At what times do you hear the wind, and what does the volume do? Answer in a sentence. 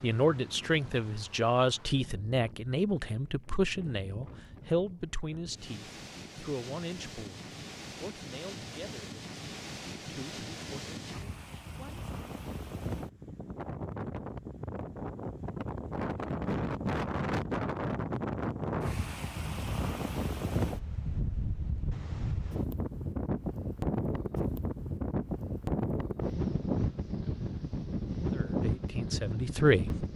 The wind can be heard from 0.0 to 30.1 s, getting louder.